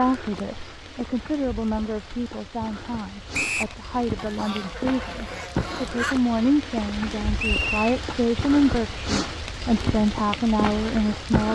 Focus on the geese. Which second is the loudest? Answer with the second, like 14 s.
6 s.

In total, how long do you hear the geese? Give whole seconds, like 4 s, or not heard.
2 s.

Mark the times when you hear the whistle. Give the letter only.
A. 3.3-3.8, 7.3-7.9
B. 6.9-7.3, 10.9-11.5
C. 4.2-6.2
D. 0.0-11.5
A.